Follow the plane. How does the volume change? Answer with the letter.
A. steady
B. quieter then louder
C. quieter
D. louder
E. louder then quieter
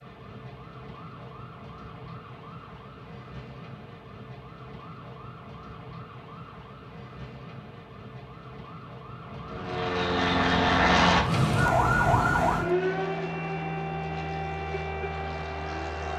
C.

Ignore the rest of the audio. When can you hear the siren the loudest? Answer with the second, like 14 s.
12 s.